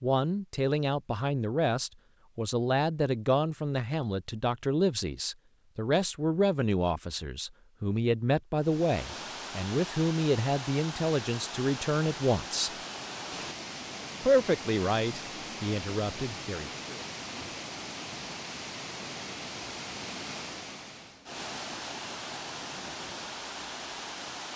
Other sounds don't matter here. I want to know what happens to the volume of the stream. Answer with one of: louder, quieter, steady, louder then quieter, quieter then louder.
steady.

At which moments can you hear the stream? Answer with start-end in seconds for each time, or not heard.
8.6-24.5.